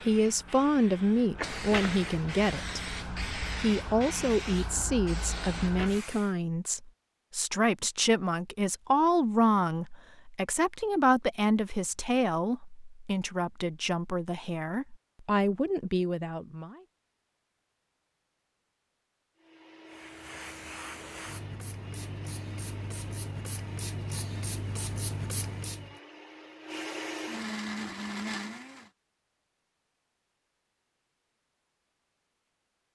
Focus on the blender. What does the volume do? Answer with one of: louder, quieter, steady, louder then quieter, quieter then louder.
louder.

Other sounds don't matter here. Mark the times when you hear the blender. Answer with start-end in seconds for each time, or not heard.
19.4-28.9.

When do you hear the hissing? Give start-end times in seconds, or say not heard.
0.0-6.3, 19.9-25.9.